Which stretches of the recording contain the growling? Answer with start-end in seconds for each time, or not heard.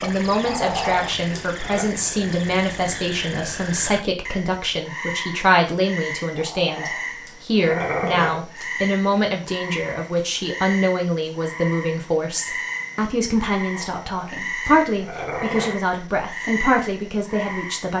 0.5-1.9, 6.3-8.4, 13.8-15.8.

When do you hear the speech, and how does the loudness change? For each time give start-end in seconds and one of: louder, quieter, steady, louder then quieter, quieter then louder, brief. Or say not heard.
0.0-17.9 steady.